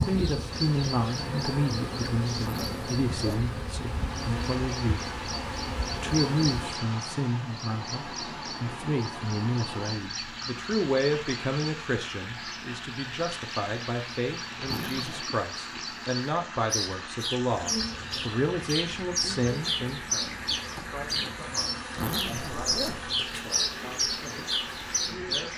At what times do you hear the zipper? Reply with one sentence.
The zipper can be heard from 2.4 to 3.5 s, from 14.7 to 15.3 s and from 21.9 to 23.1 s.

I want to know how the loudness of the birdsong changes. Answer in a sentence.
The loudness of the birdsong goes up.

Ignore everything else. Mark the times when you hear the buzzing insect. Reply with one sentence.
The buzzing insect can be heard from 0.0 to 6.8 s and from 17.5 to 25.5 s.